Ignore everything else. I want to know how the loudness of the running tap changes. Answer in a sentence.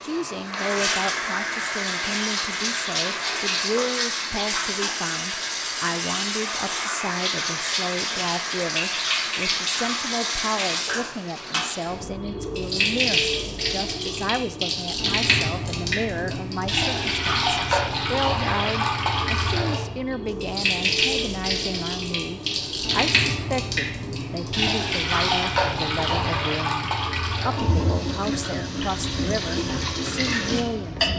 The volume of the running tap stays about the same.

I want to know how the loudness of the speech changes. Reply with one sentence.
The loudness of the speech stays about the same.